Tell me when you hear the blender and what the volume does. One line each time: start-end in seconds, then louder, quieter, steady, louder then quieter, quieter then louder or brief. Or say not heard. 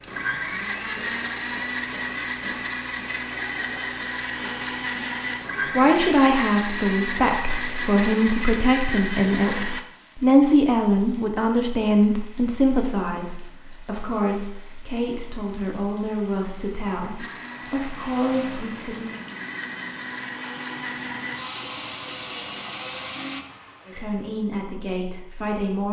0.0-9.8 steady
17.1-23.4 louder.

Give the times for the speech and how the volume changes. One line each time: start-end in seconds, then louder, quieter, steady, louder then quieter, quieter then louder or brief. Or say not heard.
5.8-19.2 quieter
23.9-25.8 brief.